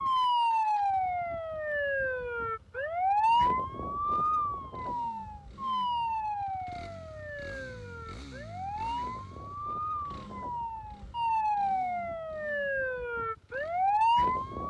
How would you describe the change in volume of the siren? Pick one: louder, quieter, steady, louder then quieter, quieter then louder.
quieter then louder.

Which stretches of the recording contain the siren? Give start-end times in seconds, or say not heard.
0.0-14.6.